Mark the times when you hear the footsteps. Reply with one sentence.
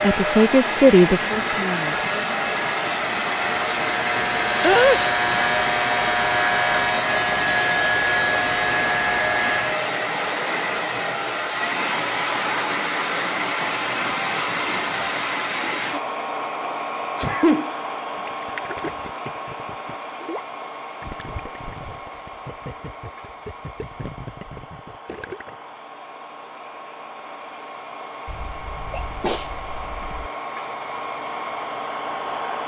The footsteps can't be heard in this clip.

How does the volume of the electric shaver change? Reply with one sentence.
The volume of the electric shaver goes up.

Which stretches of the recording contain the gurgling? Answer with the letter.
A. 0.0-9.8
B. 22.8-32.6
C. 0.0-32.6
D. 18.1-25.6
D.